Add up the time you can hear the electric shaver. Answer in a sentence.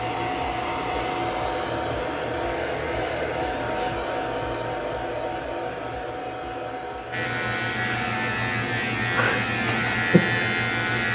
You can hear the electric shaver for 4 seconds altogether.